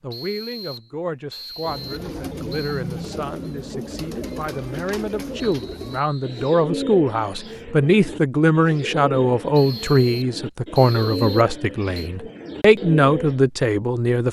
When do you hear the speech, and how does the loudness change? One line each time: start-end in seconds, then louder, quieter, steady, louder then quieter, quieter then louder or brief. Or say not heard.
0.0-14.2 louder.